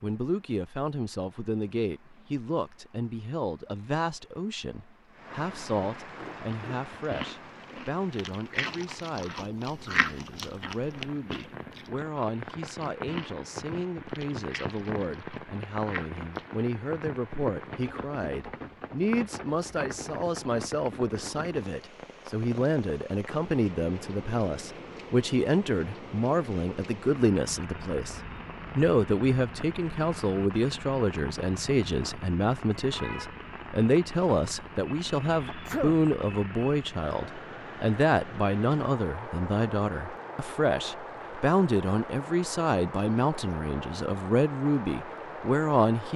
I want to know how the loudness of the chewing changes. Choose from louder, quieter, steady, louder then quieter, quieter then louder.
louder then quieter.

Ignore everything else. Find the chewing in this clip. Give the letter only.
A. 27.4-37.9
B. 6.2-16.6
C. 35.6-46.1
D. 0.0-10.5
B.